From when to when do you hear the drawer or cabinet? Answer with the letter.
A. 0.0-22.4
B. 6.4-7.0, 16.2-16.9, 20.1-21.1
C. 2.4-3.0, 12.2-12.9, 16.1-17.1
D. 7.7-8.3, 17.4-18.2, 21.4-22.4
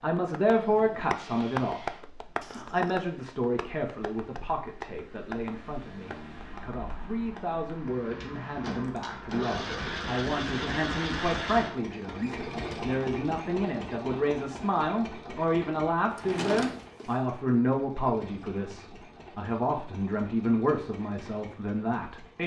C.